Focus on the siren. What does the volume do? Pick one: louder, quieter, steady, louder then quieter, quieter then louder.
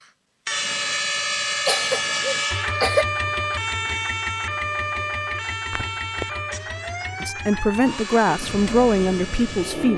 quieter.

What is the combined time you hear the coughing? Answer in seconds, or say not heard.
2 s.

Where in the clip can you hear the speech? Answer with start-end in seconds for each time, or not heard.
7.2-9.9.